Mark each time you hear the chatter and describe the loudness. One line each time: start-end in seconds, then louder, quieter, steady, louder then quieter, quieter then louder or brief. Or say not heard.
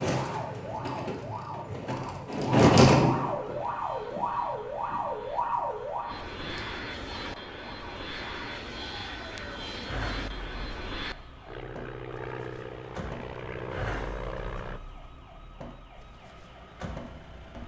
not heard.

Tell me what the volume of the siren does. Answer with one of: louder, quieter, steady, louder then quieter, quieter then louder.
quieter.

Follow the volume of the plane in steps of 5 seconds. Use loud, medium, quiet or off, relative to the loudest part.
quiet, loud, loud, off.